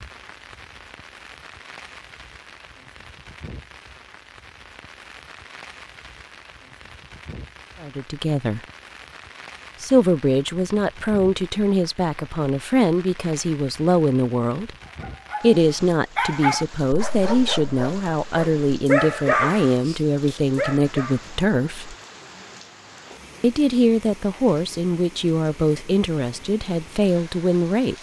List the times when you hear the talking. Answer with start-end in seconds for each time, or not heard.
7.8-8.6, 9.8-14.7, 15.4-21.9, 23.4-27.9.